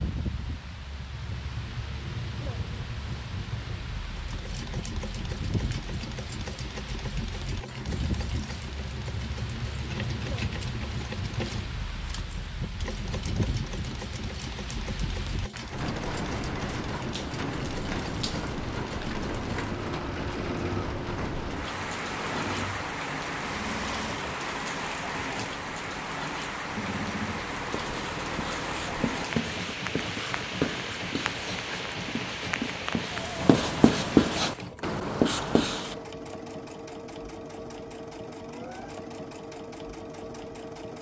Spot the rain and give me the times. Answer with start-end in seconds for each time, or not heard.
0.0-34.7.